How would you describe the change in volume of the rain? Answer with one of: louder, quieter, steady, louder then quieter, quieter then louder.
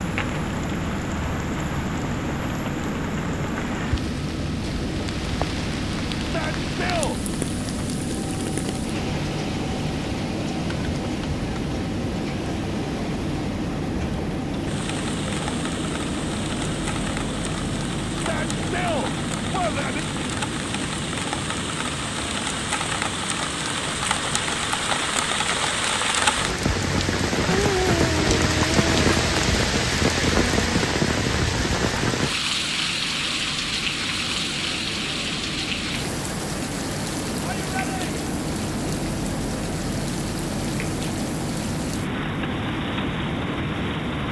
louder then quieter.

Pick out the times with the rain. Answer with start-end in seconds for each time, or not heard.
0.0-44.2.